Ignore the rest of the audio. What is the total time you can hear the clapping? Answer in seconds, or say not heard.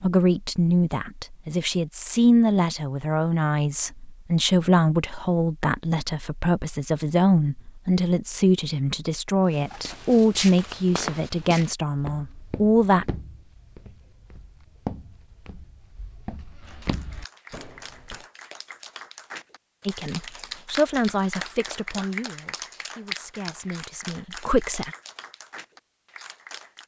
10 s.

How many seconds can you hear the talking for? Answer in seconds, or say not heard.
18 s.